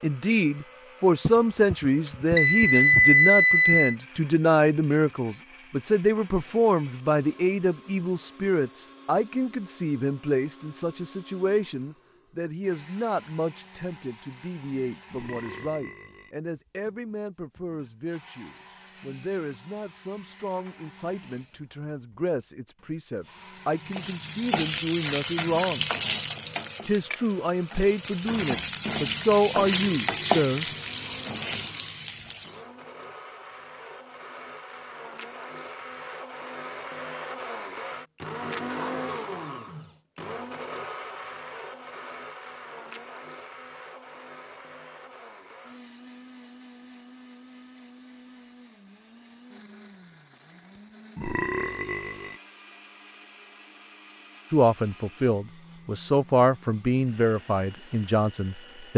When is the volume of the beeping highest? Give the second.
3 s.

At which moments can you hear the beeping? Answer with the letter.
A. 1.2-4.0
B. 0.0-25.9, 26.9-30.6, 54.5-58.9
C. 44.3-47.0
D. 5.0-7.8
A.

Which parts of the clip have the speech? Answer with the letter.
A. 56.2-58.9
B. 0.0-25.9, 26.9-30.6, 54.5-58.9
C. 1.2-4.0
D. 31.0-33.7
B.